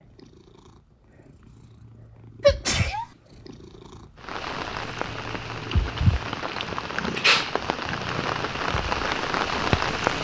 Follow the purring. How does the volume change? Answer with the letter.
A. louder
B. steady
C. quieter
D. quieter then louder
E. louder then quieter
E.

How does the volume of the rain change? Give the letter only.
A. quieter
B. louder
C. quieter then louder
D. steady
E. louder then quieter
B.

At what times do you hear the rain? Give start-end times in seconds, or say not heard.
4.2-10.1.